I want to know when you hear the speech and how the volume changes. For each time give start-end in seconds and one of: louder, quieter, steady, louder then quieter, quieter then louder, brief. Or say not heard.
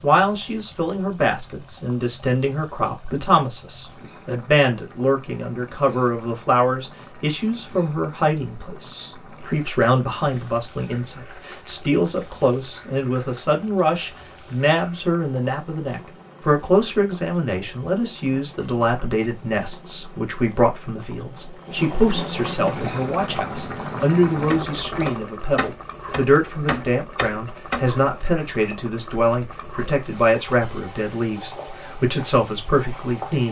0.0-33.4 steady.